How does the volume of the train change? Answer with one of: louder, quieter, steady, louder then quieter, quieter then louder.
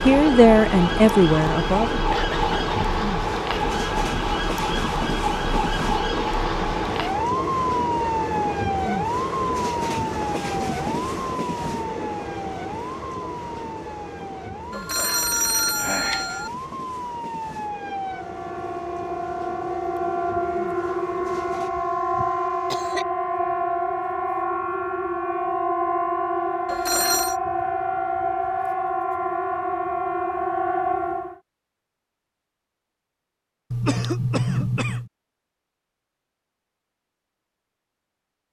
quieter.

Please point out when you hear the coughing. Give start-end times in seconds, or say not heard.
2.1-3.0, 21.3-23.1, 33.7-35.1.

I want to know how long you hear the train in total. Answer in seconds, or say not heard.
22 s.